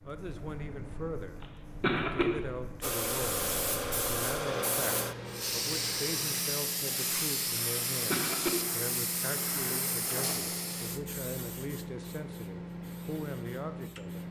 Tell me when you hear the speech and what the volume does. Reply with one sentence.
The speech can be heard from 0.0 to 14.2 s, at a steady volume.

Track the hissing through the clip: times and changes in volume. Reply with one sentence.
The hissing can be heard from 2.8 to 14.2 s, getting quieter.